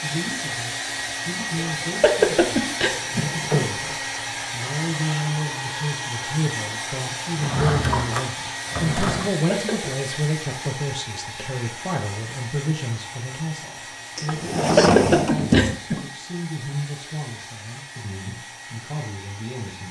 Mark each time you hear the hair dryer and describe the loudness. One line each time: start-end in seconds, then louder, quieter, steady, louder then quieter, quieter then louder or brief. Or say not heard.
0.0-19.8 quieter.